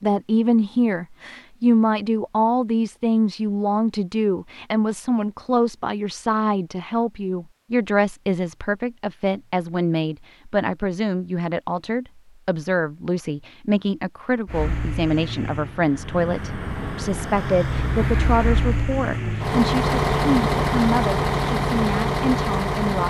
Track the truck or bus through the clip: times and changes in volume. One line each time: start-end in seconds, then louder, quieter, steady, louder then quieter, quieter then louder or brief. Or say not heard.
14.4-23.0 louder.